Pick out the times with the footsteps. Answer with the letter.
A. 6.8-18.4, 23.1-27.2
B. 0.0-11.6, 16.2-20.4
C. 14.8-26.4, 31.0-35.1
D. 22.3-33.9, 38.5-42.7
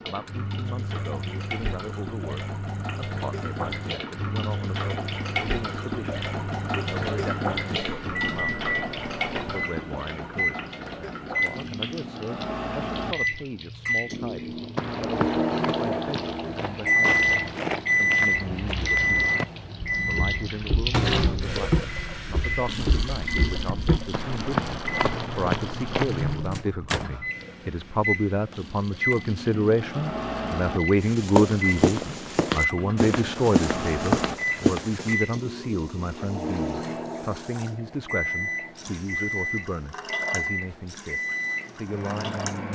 C.